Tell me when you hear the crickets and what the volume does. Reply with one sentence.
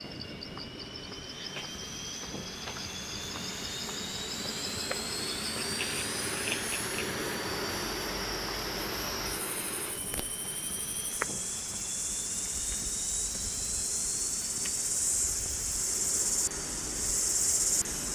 You can hear the crickets from 0.0 to 18.0 s, getting louder.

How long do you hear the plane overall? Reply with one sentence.
You can hear the plane for 18 seconds altogether.